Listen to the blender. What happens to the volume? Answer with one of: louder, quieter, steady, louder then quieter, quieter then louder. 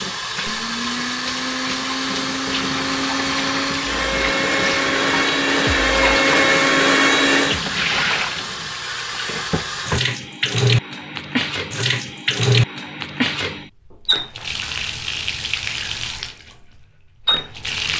louder.